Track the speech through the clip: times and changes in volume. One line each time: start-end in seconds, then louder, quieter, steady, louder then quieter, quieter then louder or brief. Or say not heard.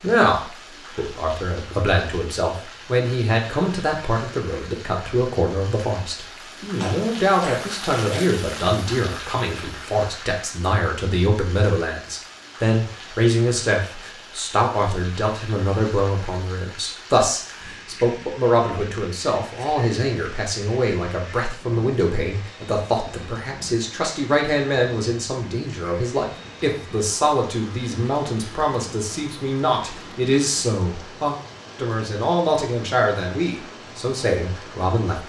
0.0-35.2 steady.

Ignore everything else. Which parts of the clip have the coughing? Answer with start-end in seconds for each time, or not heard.
6.8-8.3.